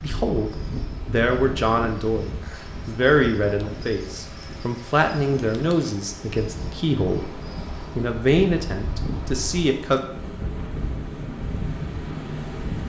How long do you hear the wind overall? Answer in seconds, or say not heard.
13 s.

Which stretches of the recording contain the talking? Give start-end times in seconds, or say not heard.
0.0-10.0.